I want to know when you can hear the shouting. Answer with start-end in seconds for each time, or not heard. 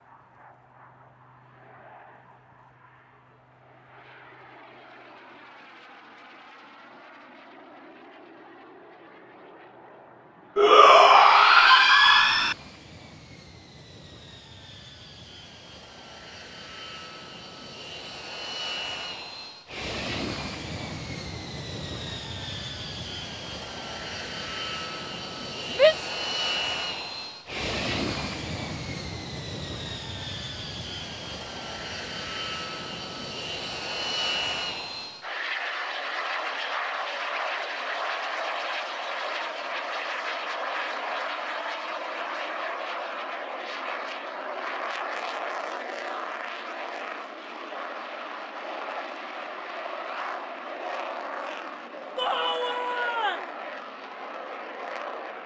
10.6-12.6, 25.7-26.1, 52.1-53.5.